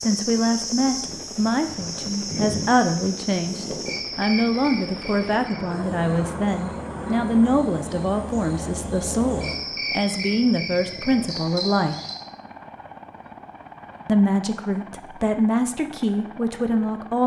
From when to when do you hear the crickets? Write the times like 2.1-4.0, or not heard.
0.0-12.2.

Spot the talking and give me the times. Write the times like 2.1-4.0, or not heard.
0.0-11.9, 14.1-17.2.